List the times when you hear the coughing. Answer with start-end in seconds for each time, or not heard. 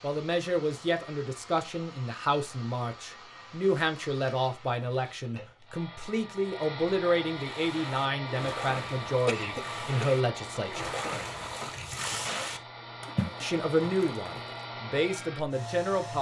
9.2-10.2.